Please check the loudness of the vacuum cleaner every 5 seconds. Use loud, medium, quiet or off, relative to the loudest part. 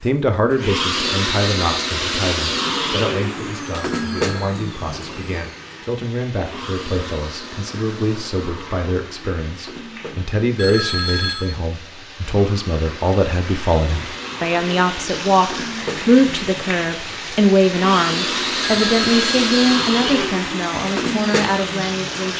loud, quiet, quiet, loud, loud.